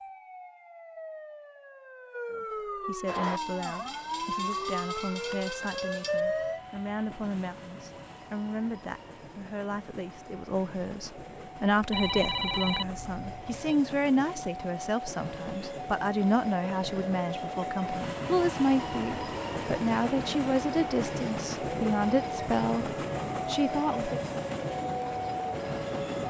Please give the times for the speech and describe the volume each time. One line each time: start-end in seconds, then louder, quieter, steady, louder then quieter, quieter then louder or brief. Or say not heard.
2.3-24.2 louder.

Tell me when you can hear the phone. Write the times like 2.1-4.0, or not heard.
11.9-13.7.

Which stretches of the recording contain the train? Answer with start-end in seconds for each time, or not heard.
3.0-26.2.